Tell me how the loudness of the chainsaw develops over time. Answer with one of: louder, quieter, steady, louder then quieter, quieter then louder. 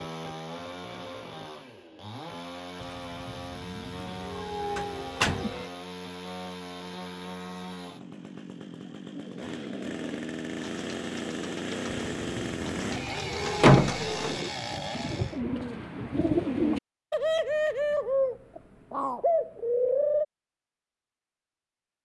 louder.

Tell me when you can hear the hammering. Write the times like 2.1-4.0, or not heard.
not heard.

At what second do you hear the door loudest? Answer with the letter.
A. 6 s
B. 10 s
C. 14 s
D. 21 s
C.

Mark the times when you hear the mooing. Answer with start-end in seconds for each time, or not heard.
2.8-5.7, 12.1-13.8.